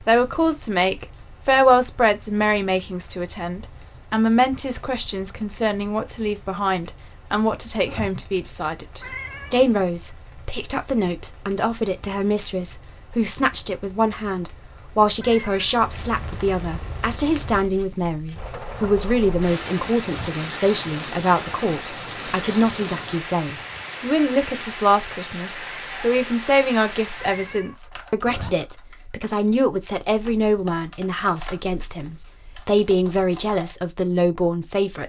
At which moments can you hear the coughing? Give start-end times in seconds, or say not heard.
not heard.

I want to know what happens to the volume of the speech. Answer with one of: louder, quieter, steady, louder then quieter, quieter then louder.
steady.